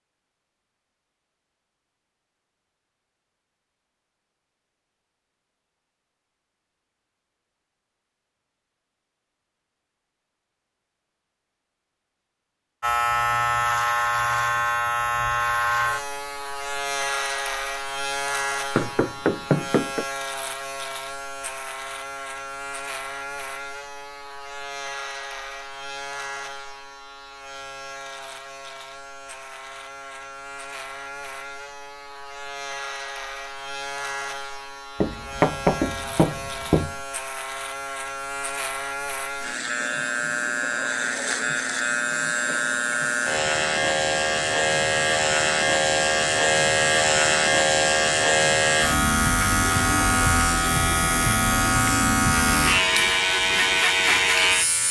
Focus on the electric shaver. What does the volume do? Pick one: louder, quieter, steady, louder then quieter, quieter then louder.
quieter then louder.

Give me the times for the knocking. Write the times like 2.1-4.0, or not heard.
18.8-20.1, 35.0-37.0.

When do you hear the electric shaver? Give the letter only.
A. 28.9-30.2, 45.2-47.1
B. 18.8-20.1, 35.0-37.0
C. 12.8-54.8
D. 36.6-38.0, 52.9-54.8
C.